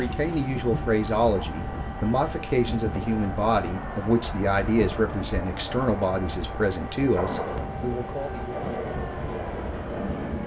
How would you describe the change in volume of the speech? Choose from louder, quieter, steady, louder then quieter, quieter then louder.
steady.